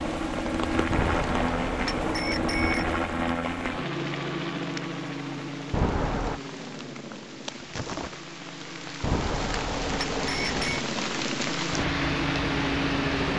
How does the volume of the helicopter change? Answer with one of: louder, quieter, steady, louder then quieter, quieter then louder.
quieter then louder.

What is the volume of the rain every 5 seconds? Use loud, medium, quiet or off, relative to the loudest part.
medium, medium, loud.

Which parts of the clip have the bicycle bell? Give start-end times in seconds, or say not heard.
0.9-2.9, 5.7-6.4, 9.0-10.8.